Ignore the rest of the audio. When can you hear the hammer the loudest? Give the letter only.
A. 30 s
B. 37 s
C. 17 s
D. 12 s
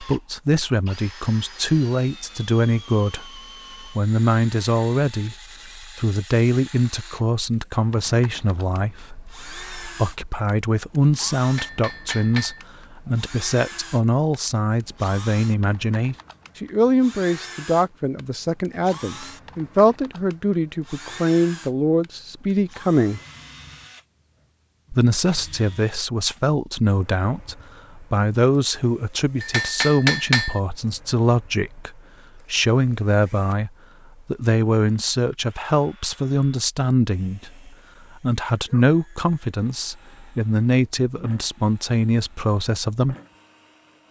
A.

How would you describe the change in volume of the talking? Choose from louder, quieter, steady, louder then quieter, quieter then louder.
steady.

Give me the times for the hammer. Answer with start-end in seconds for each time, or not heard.
11.4-12.7, 29.4-30.6.